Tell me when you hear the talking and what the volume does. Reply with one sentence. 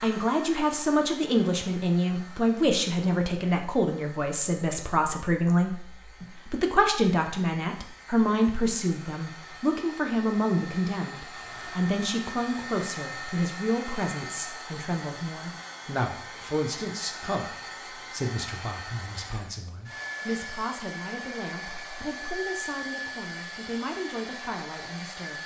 The talking can be heard from 0.0 to 25.4 s, getting quieter.